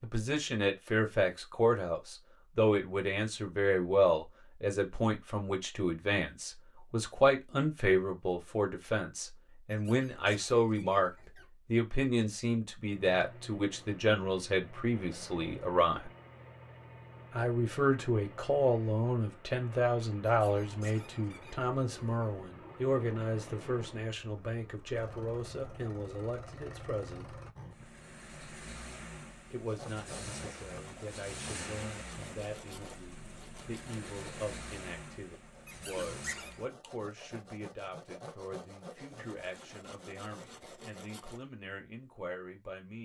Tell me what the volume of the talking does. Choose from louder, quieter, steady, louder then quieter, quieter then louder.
quieter.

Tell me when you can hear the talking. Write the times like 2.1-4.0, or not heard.
0.0-16.1, 17.3-27.4, 29.5-43.0.